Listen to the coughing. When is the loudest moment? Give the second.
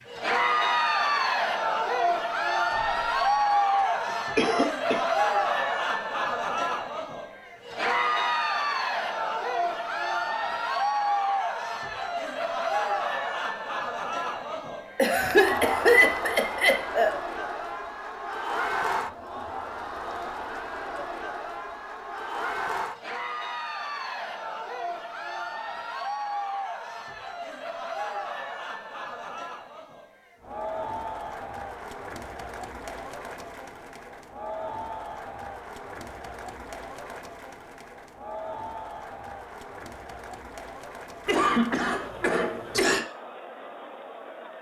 16 s.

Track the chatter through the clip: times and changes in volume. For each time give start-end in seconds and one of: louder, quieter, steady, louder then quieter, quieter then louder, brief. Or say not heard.
0.1-44.5 quieter.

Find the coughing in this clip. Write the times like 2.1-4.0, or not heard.
2.8-3.2, 4.3-5.0, 14.9-17.1, 41.2-43.0.